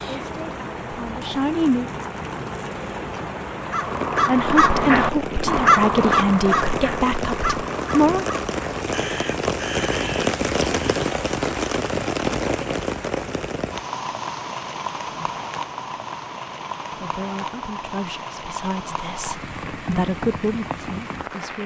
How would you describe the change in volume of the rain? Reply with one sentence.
The volume of the rain goes up, then down.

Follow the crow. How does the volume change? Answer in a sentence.
The loudness of the crow goes down.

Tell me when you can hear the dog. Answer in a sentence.
The dog can't be heard in this clip.